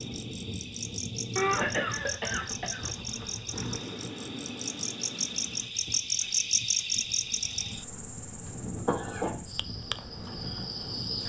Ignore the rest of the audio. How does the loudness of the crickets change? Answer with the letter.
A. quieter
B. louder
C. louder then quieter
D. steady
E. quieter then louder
C.